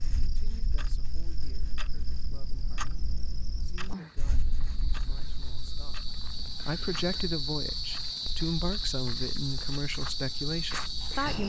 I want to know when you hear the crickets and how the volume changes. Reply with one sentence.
You can hear the crickets from 0.0 to 11.4 s, getting louder.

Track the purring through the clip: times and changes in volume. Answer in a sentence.
The purring can't be heard in this clip.